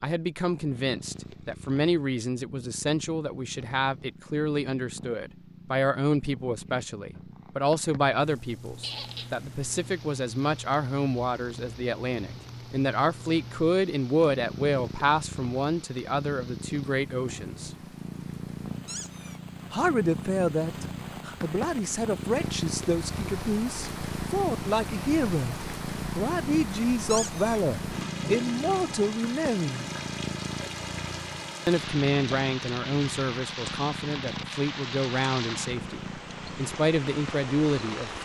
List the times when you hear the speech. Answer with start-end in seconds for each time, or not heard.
0.0-17.7, 19.7-29.9, 31.6-38.2.